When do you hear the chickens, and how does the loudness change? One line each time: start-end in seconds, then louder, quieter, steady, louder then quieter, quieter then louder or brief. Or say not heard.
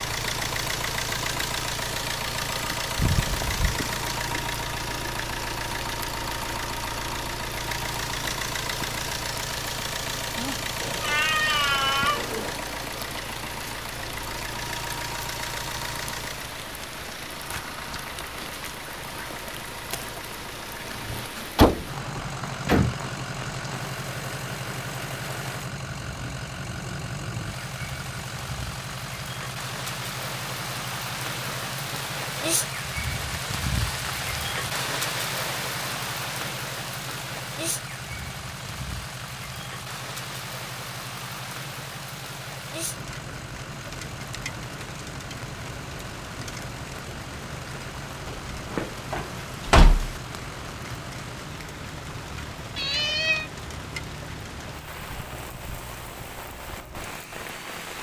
not heard.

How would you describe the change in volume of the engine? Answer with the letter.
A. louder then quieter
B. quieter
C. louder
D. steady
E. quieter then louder
B.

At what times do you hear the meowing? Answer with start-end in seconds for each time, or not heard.
10.8-12.6, 52.8-53.5.